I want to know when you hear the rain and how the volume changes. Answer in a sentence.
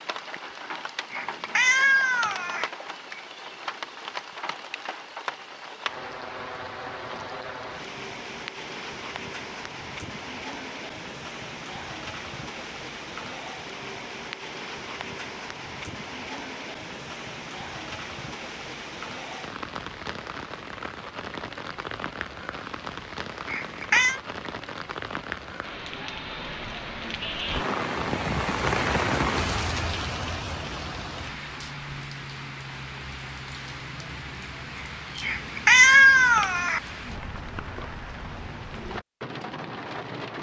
The rain can be heard from 0.0 to 40.3 s, getting louder then quieter.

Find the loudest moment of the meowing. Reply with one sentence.
The volume of the meowing peaks at 36 seconds.